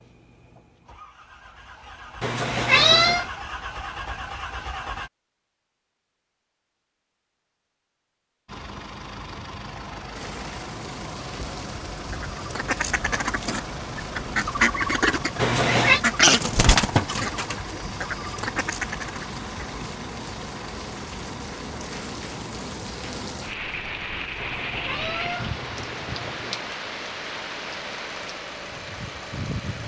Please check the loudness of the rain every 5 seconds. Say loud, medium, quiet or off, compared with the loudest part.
off, off, medium, medium, loud, loud.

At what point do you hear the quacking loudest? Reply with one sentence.
The loudest moment of the quacking is at 16 seconds.